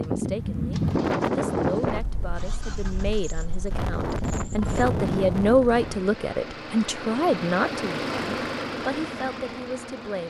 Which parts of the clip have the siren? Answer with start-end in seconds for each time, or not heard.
not heard.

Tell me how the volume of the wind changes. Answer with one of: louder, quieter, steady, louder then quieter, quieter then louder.
quieter then louder.